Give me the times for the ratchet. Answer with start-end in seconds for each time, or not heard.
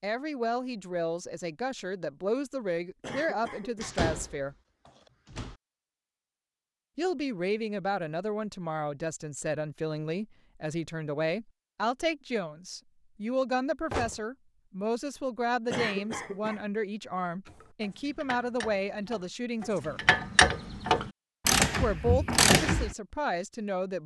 17.4-22.9.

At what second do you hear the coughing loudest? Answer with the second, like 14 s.
16 s.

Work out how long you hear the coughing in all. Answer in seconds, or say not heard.
2 s.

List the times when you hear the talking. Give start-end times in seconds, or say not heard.
0.0-4.5, 7.0-20.0, 21.8-24.0.